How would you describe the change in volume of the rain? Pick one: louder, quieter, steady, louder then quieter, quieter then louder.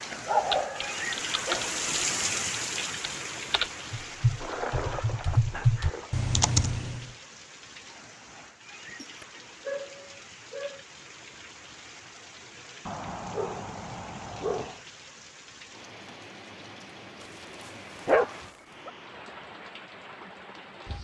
quieter.